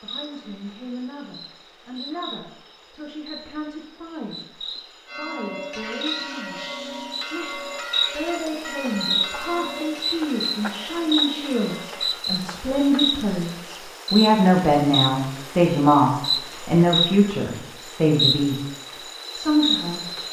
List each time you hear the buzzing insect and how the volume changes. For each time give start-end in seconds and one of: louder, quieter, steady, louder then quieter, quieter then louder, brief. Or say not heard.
0.0-20.2 louder.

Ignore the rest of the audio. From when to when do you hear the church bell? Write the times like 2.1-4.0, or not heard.
5.0-12.2.